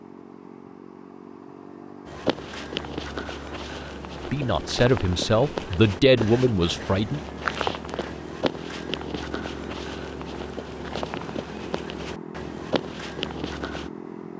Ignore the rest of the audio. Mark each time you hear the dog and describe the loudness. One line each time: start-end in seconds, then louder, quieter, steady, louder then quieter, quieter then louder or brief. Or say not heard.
not heard.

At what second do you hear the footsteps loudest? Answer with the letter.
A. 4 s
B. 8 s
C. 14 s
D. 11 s
B.